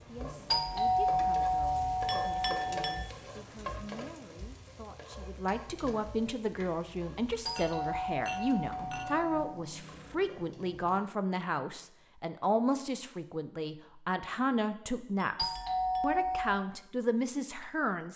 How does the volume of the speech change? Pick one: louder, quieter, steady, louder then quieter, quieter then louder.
louder.